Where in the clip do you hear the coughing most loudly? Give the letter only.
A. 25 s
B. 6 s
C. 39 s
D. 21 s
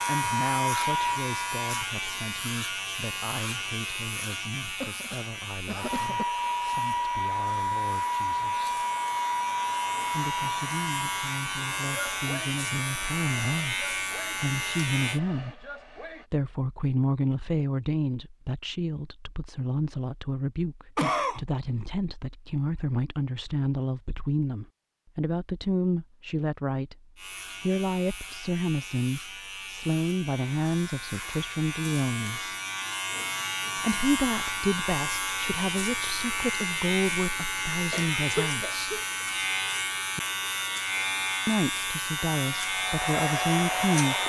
D.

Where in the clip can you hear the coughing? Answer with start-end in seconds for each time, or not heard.
4.6-6.2, 20.9-21.4, 37.9-39.0.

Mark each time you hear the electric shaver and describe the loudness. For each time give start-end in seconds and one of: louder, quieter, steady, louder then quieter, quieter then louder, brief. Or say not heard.
0.0-15.2 quieter then louder
27.1-44.2 louder.